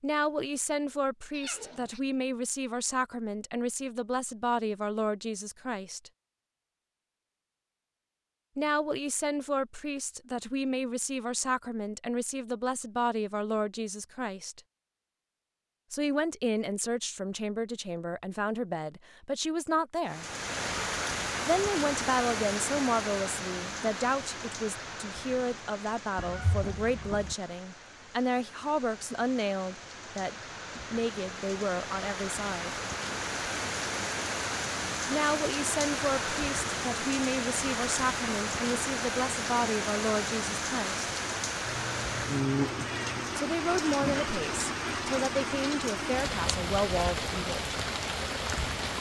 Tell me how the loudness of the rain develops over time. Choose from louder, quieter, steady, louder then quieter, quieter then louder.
quieter then louder.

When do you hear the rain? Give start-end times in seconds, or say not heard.
20.1-48.9.